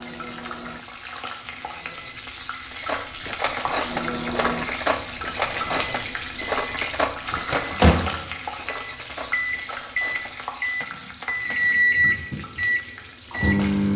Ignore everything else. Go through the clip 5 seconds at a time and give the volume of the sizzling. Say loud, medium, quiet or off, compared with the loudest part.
loud, loud, medium.